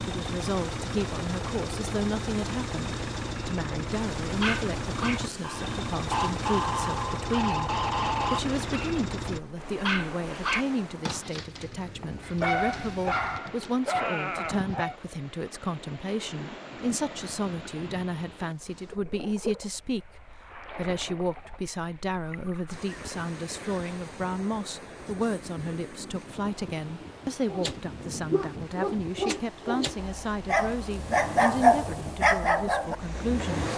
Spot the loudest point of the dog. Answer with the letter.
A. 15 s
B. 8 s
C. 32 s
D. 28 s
C.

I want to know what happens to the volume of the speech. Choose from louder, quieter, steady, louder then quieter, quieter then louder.
steady.